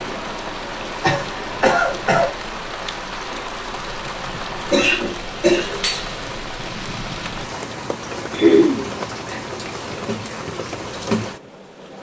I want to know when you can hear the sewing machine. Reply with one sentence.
The sewing machine can't be heard in this clip.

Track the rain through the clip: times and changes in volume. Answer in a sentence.
You can hear the rain from 0.0 to 11.9 s, at a steady volume.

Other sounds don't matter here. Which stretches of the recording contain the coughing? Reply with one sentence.
The coughing can be heard from 1.0 to 2.3 s, from 4.7 to 6.1 s and from 8.3 to 9.4 s.